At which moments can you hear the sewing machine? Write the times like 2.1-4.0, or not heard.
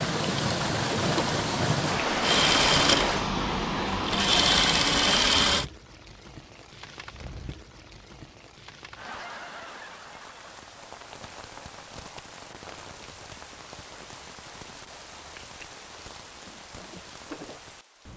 2.2-5.7.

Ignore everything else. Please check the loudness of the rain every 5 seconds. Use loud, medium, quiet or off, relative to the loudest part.
loud, quiet, quiet, quiet.